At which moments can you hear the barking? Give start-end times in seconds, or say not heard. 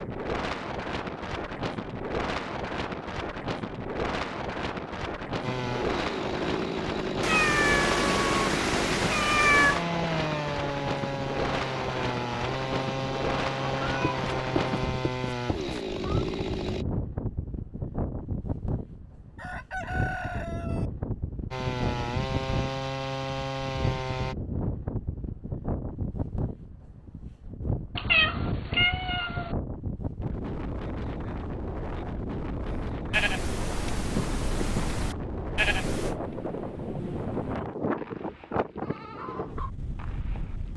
not heard.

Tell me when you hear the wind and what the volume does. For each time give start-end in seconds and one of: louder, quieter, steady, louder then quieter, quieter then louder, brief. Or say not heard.
0.0-40.7 steady.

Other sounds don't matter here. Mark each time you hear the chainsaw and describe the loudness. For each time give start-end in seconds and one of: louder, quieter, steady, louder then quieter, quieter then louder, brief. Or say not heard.
5.4-16.9 steady
21.5-24.4 brief.